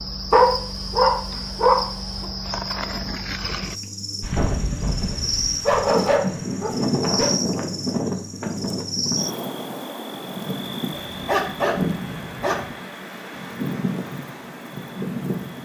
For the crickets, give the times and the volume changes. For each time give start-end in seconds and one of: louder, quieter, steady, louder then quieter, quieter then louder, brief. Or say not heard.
0.0-15.6 quieter.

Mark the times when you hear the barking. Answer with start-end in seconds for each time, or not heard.
0.3-1.8, 5.7-7.3, 10.9-12.8.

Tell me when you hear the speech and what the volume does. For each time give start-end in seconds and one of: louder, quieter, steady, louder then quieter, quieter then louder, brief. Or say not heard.
not heard.